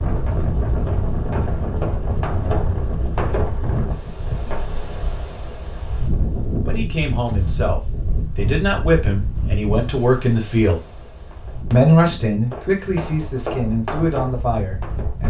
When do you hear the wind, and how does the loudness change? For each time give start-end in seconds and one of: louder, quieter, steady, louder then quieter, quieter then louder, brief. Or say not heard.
0.0-15.2 quieter.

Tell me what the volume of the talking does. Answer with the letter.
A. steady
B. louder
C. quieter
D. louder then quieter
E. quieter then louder
D.